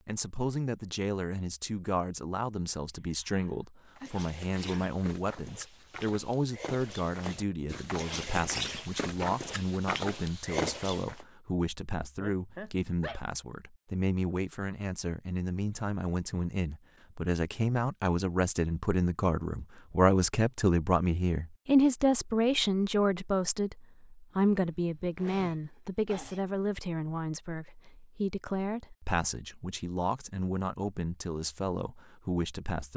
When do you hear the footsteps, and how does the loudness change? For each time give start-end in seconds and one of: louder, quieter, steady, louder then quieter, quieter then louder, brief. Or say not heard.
4.0-11.2 louder.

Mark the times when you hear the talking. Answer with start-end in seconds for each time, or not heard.
0.1-32.9.